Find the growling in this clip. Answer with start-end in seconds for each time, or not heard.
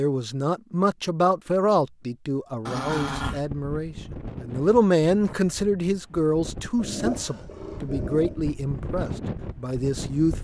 2.6-3.4, 6.8-8.4.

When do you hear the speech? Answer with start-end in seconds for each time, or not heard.
0.0-10.4.